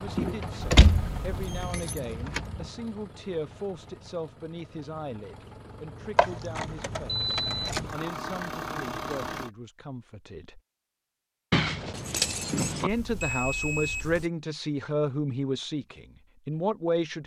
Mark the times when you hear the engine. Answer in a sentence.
The engine can be heard from 0.0 to 9.5 s.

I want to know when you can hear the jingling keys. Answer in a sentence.
You can hear the jingling keys from 0.1 to 2.6 s, from 6.2 to 7.9 s and from 11.5 to 12.9 s.